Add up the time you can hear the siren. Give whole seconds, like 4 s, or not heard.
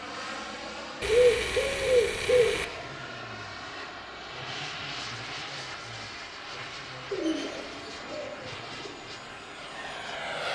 not heard.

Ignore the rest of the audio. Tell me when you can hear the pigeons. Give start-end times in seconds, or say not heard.
1.0-2.6, 7.1-8.9.